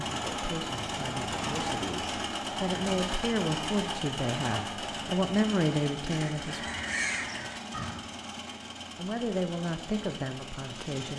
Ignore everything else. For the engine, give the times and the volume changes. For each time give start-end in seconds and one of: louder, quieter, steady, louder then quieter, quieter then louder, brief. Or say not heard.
0.0-11.1 quieter.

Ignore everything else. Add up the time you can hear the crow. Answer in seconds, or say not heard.
2 s.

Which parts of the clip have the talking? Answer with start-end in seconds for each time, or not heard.
0.1-6.7, 8.9-11.1.